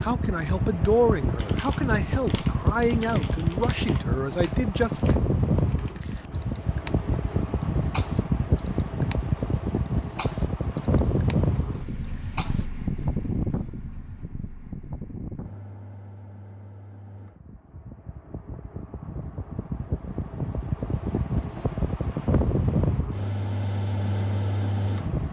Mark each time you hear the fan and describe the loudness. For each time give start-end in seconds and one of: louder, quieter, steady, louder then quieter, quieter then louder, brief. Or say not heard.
0.0-25.2 quieter then louder.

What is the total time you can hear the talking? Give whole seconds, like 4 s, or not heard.
5 s.